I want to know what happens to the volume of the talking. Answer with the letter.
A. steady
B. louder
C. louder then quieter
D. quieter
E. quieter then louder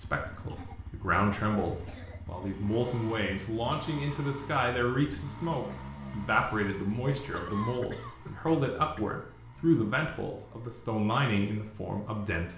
A.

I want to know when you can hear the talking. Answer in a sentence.
The talking can be heard from 0.0 to 12.5 s.